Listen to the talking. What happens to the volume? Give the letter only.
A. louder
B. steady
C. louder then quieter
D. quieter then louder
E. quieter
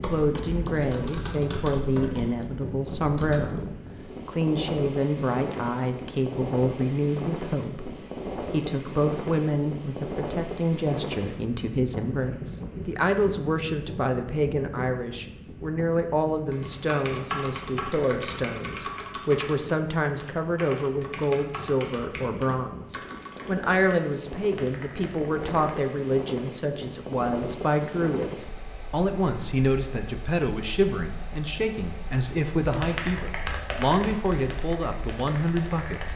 B.